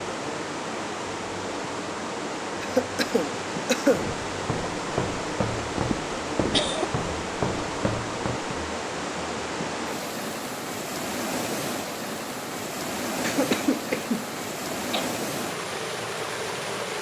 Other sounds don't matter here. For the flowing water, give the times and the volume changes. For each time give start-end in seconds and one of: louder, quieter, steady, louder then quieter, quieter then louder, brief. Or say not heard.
0.0-16.9 steady.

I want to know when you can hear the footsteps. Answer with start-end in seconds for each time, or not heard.
3.9-8.6.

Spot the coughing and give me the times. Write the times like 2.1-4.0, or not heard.
2.6-4.0, 5.7-6.9, 13.2-15.1.